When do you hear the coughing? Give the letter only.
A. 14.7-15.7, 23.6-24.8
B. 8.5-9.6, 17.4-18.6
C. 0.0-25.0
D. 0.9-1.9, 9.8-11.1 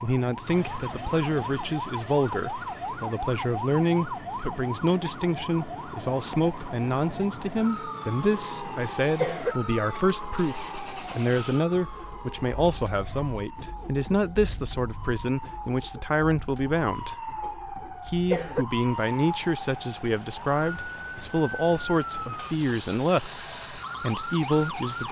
B.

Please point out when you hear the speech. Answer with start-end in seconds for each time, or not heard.
0.0-25.0.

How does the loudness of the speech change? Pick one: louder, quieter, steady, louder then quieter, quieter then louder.
steady.